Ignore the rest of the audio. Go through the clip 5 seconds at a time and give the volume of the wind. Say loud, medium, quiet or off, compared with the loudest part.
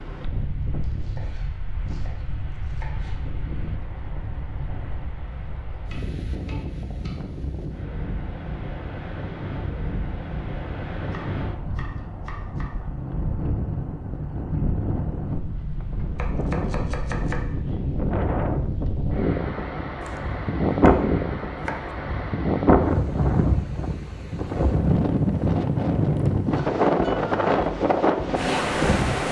quiet, quiet, medium, medium, loud, loud.